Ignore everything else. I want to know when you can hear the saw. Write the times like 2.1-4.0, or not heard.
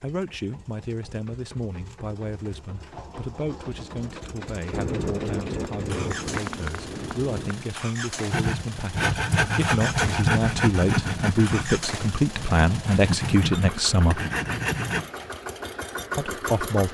8.3-15.1.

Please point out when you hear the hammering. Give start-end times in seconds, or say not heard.
4.7-7.7.